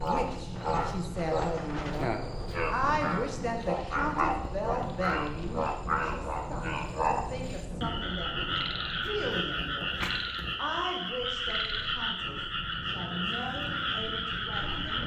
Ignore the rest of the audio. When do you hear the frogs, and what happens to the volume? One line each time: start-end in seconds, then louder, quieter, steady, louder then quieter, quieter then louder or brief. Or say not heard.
0.0-15.0 steady.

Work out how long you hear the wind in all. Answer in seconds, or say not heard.
15 s.